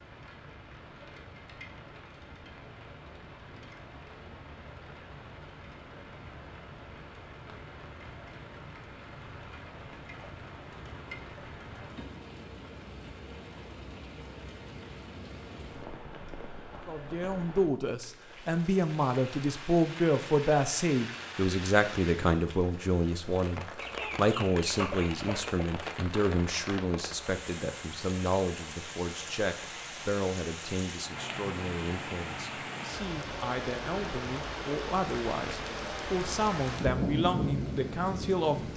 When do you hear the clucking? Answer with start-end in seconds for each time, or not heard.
23.8-25.6.